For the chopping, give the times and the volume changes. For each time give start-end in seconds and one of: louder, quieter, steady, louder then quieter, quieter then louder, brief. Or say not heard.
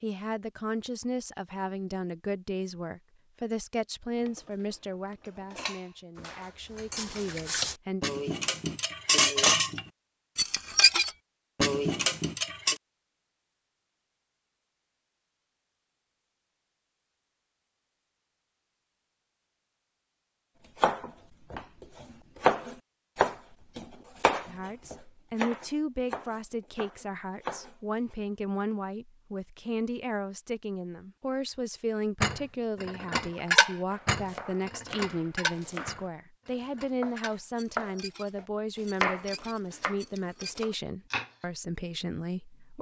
20.8-27.8 louder then quieter
33.9-41.5 louder then quieter.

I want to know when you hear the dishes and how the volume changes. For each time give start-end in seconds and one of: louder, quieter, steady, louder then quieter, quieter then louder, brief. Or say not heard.
4.2-12.8 louder
32.2-40.6 quieter.